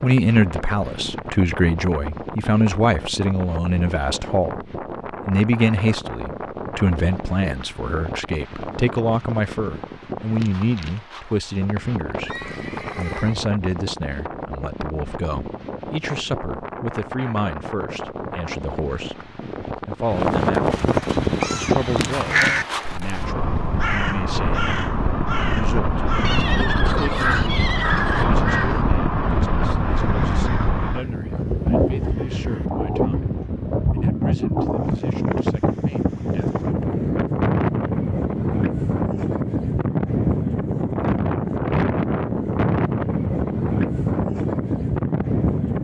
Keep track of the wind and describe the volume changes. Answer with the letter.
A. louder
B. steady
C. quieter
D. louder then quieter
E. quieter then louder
A.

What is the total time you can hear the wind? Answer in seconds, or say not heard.
46 s.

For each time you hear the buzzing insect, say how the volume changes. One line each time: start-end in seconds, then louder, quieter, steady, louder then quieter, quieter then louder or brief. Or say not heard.
not heard.